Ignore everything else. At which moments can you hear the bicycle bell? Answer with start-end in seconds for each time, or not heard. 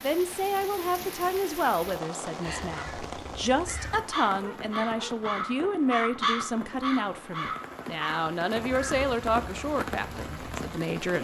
not heard.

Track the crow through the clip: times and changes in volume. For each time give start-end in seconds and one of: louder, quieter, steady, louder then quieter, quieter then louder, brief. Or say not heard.
2.6-10.8 louder then quieter.